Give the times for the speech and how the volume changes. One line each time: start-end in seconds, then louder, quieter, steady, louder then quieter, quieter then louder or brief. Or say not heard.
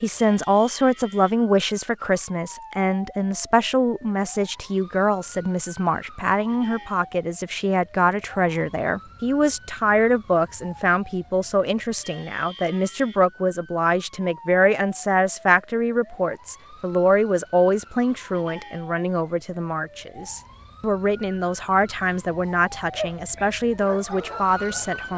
0.0-25.1 steady.